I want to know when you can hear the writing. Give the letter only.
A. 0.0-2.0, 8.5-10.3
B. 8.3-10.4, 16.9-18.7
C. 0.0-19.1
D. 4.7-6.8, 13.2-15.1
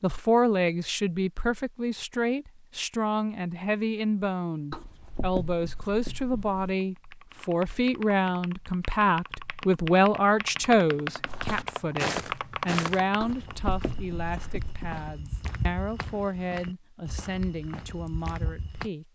D.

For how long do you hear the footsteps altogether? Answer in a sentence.
The footsteps can be heard for 8 seconds in total.